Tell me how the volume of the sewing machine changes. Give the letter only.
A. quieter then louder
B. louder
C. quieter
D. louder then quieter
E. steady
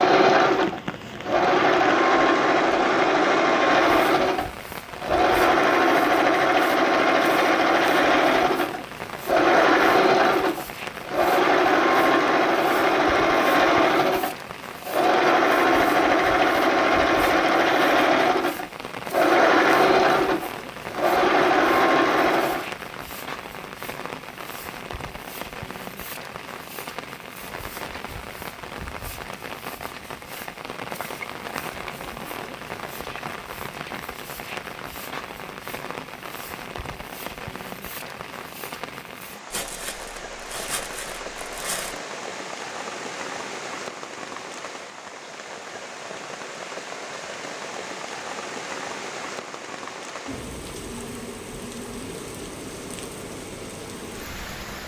E.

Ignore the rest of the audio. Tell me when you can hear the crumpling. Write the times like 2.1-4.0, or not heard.
39.5-42.0.